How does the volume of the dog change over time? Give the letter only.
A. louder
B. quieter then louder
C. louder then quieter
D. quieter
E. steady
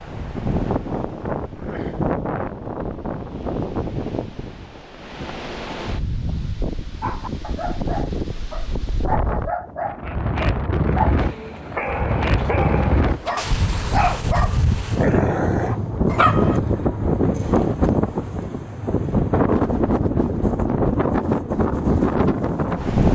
A.